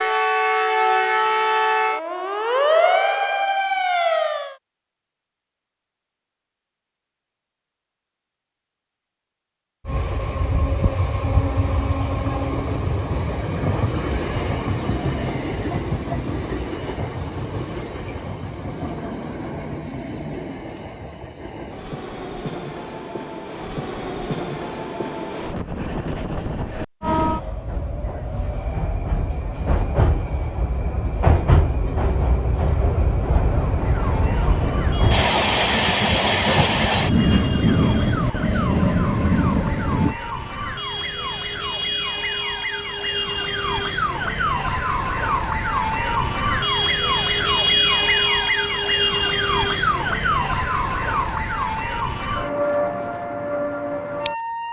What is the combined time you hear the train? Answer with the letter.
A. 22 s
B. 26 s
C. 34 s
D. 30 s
D.